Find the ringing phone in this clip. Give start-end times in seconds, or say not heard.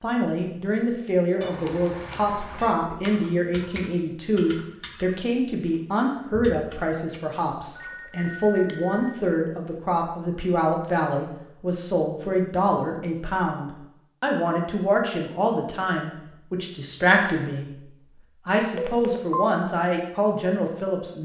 1.4-2.8, 7.8-9.2, 18.8-19.5.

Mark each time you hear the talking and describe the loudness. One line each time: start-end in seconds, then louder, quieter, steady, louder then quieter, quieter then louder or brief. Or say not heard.
0.0-21.2 steady.